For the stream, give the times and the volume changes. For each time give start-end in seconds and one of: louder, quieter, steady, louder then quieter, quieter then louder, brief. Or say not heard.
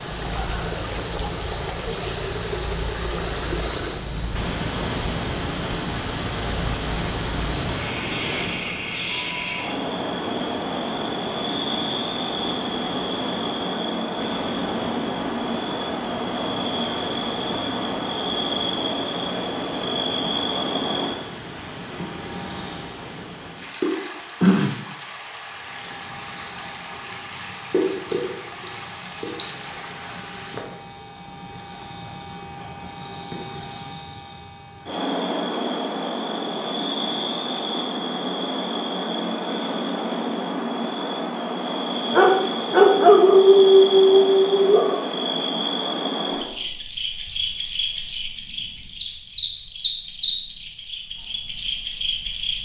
0.0-30.6 quieter.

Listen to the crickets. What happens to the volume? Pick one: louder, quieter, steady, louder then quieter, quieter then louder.
steady.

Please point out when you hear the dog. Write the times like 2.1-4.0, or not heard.
42.1-45.0.